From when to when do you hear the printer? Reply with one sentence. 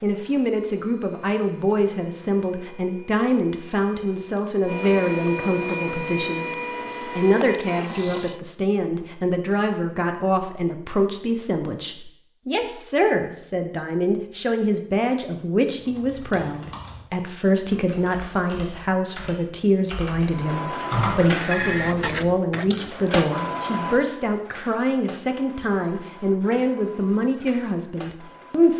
You can hear the printer from 0.0 to 8.4 s and from 20.3 to 28.7 s.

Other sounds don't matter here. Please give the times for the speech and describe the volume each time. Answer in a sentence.
The speech can be heard from 0.0 to 28.7 s, at a steady volume.